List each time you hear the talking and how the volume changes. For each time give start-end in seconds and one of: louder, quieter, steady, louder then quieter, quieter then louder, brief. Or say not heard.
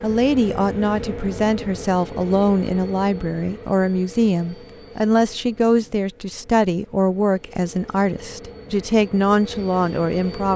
0.0-10.5 steady.